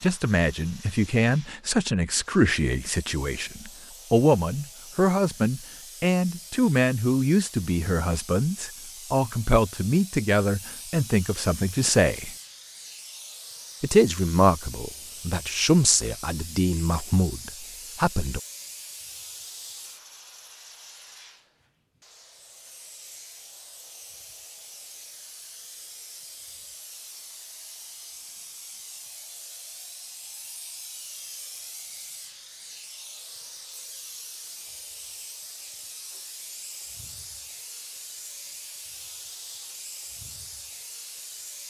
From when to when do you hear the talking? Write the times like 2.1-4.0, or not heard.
0.0-12.3, 13.8-18.4.